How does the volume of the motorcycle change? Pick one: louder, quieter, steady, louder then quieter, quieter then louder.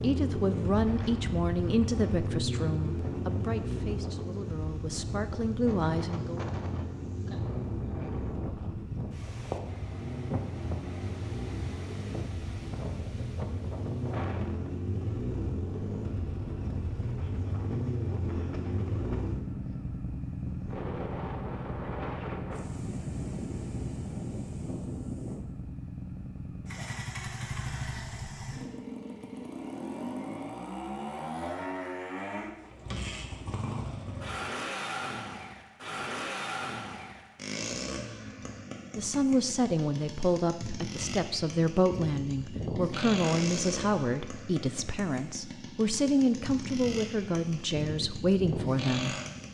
steady.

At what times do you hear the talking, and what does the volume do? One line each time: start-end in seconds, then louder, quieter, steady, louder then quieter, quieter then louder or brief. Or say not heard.
0.0-6.4 quieter then louder
39.0-49.1 steady.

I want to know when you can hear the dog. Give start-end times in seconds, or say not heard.
not heard.